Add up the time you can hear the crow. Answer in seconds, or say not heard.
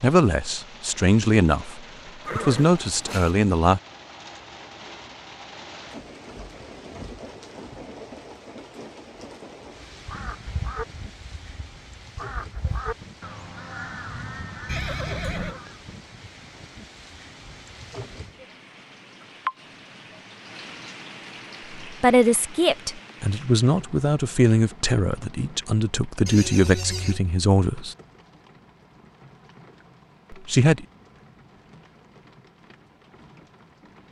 6 s.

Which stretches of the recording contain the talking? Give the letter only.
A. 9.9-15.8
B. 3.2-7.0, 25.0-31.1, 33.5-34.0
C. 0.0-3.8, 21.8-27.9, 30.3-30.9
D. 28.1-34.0
C.